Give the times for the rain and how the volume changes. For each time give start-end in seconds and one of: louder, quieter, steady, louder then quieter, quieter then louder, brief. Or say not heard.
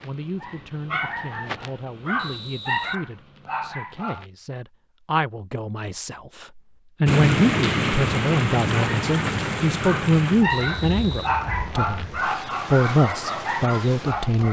7.0-14.4 quieter.